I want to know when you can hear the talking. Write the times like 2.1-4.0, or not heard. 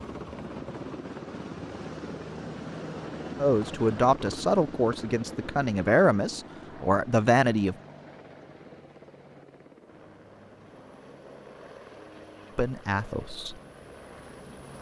3.4-7.8, 12.6-13.6.